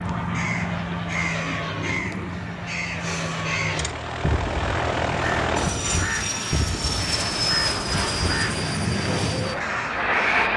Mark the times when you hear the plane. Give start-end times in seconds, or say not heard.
0.0-10.5.